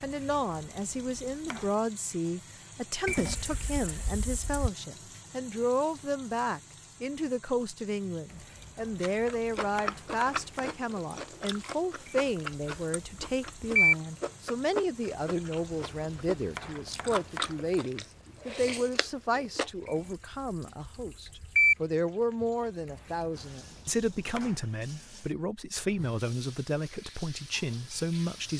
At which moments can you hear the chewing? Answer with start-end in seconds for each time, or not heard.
9.0-19.7.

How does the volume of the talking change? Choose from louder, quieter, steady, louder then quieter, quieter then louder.
steady.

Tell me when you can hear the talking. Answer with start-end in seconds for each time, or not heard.
0.0-28.5.